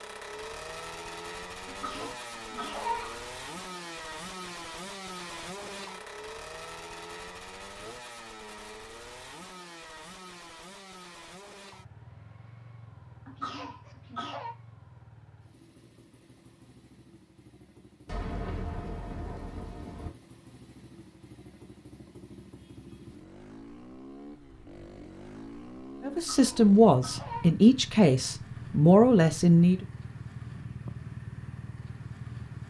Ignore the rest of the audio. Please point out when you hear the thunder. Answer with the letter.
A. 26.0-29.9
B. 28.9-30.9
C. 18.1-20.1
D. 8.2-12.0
C.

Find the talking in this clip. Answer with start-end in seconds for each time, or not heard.
26.0-29.9.